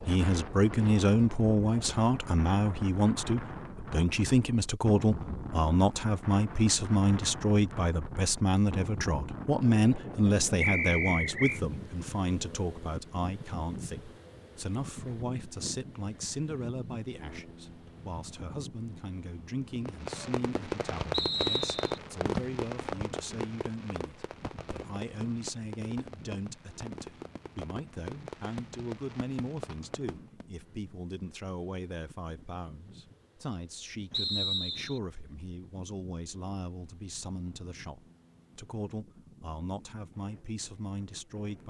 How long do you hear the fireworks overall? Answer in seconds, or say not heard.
11 s.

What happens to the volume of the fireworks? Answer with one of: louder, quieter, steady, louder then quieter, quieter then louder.
quieter.